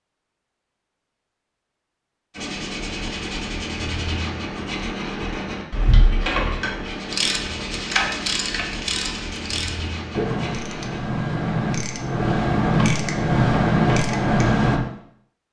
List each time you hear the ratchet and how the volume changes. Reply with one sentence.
The ratchet can be heard from 7.1 to 14.8 s, getting louder.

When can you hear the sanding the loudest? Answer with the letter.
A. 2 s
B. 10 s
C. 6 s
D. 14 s
C.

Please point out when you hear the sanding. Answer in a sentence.
You can hear the sanding from 2.3 to 11.0 s.